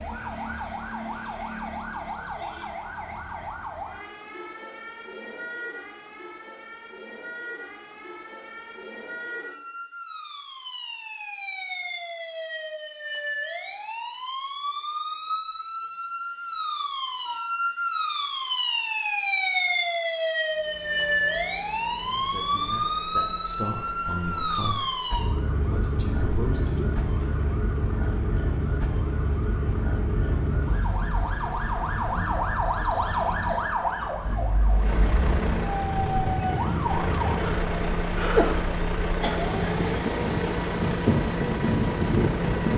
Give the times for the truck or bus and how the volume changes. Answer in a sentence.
The truck or bus can be heard from 20.4 to 42.7 s, getting louder.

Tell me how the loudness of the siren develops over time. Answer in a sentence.
The volume of the siren goes up.